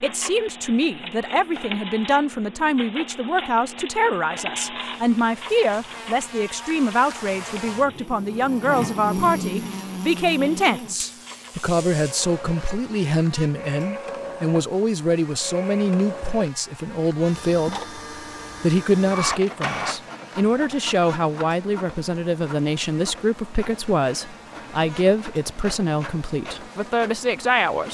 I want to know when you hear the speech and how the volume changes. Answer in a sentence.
The speech can be heard from 0.0 to 17.8 s, at a steady volume; and from 18.6 to 27.8 s, at a steady volume.